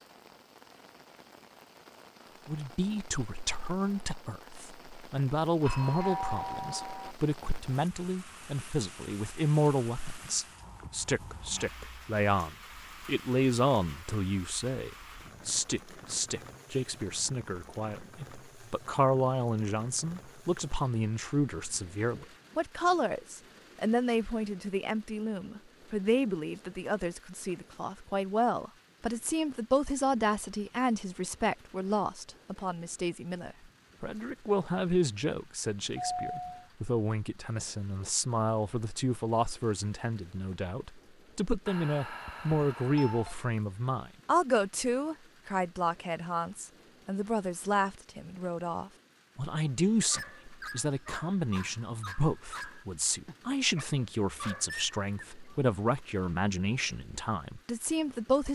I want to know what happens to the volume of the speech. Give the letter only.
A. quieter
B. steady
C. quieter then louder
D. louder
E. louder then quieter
B.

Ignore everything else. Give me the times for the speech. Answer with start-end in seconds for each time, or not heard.
2.5-58.5.